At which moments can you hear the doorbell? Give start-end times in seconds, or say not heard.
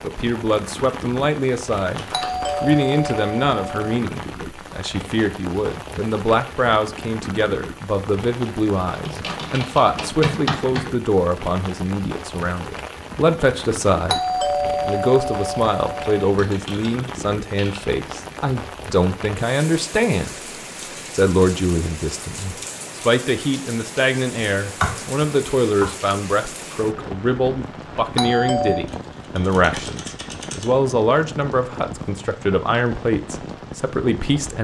2.1-4.0, 14.1-16.1, 28.1-28.9.